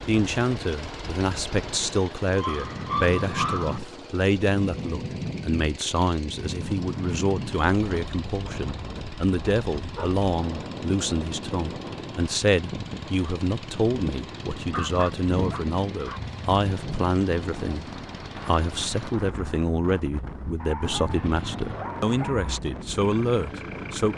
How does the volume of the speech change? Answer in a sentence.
The volume of the speech stays about the same.